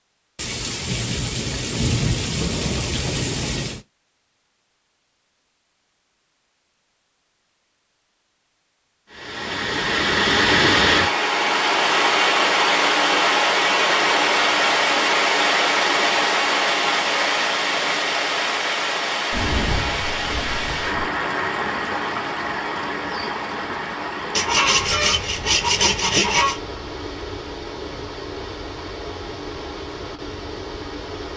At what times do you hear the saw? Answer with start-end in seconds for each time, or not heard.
24.4-26.6.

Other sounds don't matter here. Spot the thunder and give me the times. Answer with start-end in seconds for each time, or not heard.
0.3-3.8, 19.3-21.1.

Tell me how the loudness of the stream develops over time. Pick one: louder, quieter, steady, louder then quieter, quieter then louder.
quieter.